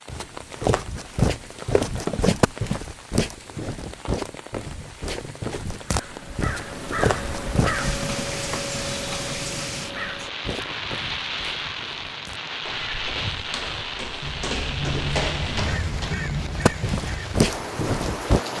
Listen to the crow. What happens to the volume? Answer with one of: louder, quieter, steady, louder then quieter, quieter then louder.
quieter then louder.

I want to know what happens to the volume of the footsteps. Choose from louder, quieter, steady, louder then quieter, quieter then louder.
quieter then louder.